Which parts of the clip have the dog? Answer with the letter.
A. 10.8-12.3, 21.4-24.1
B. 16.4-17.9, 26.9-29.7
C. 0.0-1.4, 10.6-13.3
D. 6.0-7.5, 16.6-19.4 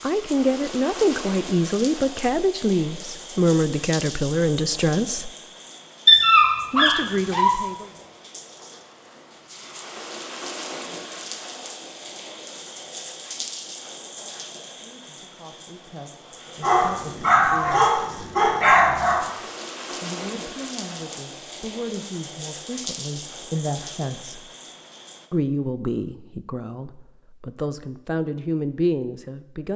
D.